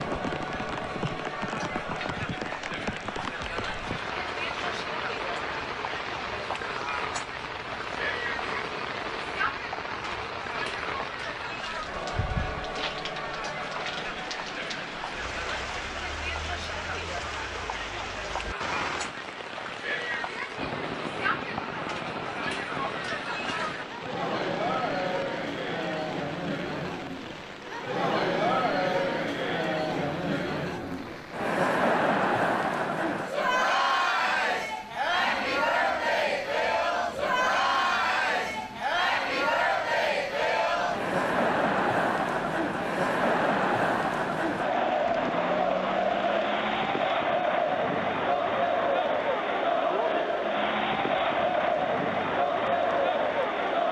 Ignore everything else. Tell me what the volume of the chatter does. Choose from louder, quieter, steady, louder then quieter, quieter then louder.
louder.